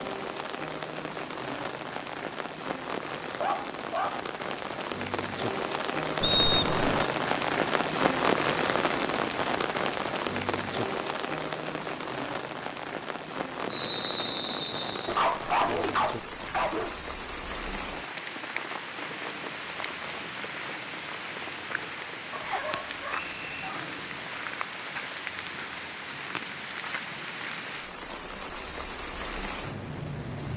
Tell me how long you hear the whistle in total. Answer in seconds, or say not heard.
3 s.